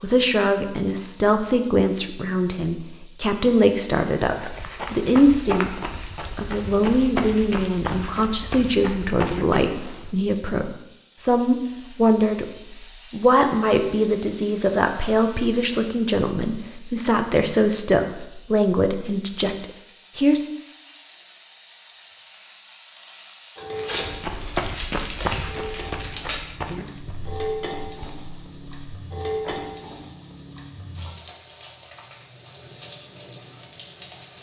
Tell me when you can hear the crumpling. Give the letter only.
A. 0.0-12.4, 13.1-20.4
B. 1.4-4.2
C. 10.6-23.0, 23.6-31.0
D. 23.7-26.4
D.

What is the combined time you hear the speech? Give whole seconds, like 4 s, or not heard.
20 s.